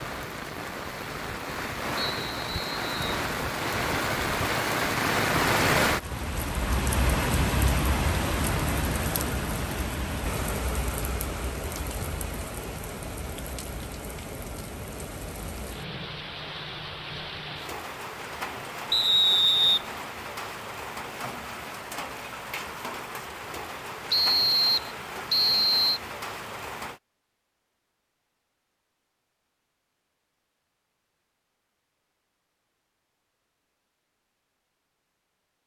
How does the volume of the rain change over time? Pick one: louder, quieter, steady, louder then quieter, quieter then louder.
quieter.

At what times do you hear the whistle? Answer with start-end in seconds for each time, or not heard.
1.9-3.2, 18.9-19.8, 24.1-26.0.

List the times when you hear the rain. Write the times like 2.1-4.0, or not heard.
0.0-27.0.